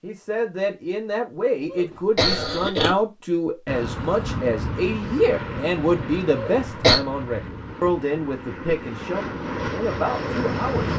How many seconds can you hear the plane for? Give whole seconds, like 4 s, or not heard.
7 s.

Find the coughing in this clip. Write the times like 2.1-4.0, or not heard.
1.7-3.0, 6.3-7.0.